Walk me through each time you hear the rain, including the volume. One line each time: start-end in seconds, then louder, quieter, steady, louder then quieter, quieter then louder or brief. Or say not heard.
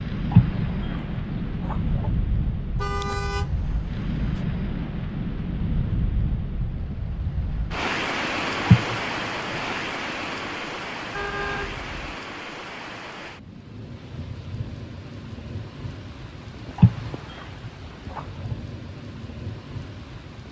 0.0-20.4 quieter.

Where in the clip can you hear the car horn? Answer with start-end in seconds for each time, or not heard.
2.8-4.5, 11.1-12.2.